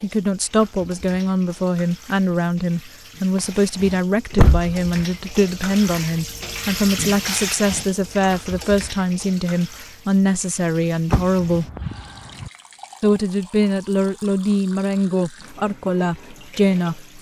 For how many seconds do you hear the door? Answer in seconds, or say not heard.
3 s.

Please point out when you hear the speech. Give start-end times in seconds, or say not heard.
0.0-11.7, 13.0-17.1.